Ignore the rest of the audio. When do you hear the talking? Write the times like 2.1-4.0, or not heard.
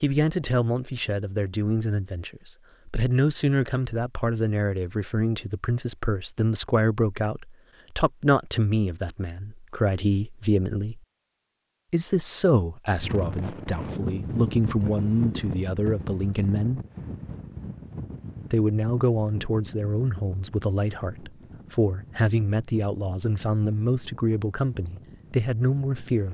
0.0-11.0, 11.9-16.8, 18.5-26.2.